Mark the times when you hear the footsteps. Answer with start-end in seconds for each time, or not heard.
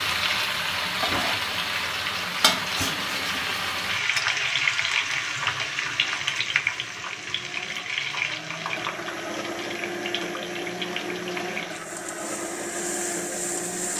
not heard.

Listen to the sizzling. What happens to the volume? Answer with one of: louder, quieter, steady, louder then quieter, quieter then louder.
quieter.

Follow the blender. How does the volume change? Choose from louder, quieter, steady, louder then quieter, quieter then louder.
louder.